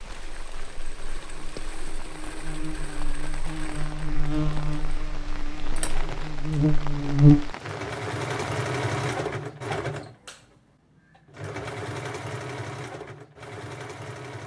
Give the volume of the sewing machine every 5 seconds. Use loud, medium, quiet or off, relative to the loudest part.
quiet, loud, medium.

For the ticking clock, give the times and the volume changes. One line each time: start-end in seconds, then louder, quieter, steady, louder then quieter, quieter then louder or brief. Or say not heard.
not heard.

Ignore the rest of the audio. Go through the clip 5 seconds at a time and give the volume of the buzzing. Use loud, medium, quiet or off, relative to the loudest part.
quiet, loud, off.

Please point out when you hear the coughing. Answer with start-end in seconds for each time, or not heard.
not heard.